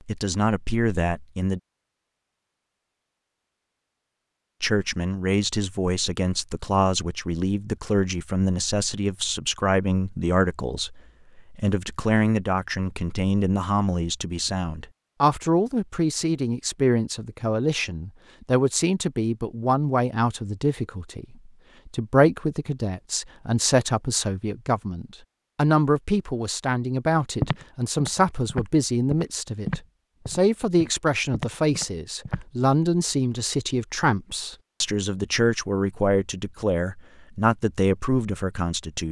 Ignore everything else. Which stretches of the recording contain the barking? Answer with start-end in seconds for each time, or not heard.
not heard.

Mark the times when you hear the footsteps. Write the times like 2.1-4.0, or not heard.
27.4-32.5.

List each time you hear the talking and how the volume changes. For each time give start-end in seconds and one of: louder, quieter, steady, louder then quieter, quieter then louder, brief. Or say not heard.
0.1-1.6 brief
4.6-39.0 steady.